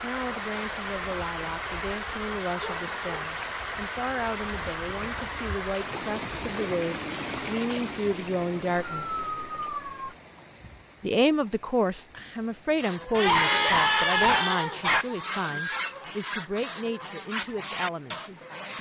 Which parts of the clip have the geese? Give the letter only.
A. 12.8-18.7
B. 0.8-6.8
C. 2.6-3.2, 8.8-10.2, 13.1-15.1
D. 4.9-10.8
A.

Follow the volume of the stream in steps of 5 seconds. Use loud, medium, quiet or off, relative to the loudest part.
loud, loud, quiet, quiet.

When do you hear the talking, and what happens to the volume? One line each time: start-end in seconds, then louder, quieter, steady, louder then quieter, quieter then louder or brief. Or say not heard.
0.0-9.2 louder
11.0-18.7 quieter.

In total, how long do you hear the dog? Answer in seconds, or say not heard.
4 s.